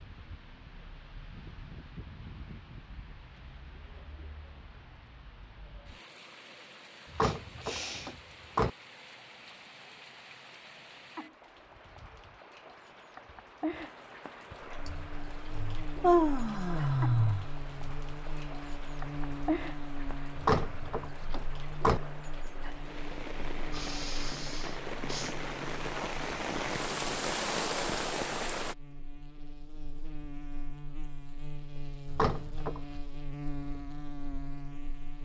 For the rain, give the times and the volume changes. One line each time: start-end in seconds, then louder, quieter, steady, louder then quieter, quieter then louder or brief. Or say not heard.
0.0-28.8 louder.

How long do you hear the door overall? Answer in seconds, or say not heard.
4 s.